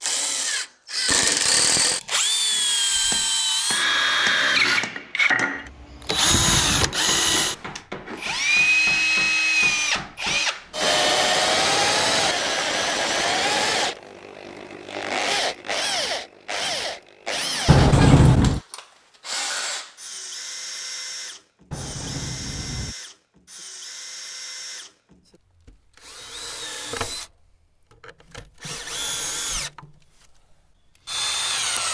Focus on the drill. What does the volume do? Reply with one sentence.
The volume of the drill goes down.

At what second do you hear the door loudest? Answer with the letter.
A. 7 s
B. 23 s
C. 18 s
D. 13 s
C.